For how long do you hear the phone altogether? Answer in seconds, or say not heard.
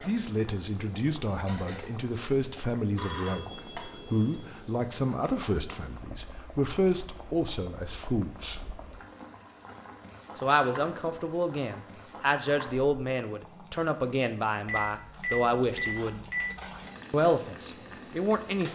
4 s.